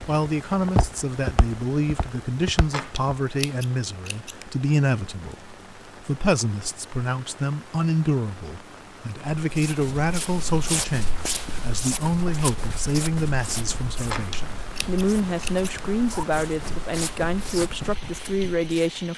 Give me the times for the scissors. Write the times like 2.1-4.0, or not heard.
2.7-4.5, 14.1-15.8.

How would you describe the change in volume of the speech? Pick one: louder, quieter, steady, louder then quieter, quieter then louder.
steady.